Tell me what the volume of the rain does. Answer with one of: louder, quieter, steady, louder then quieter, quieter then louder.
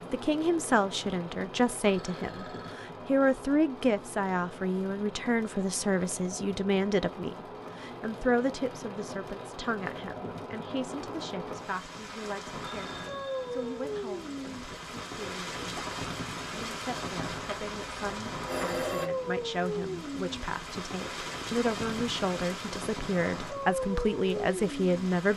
louder.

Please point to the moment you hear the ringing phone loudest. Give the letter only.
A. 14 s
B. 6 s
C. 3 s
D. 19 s
D.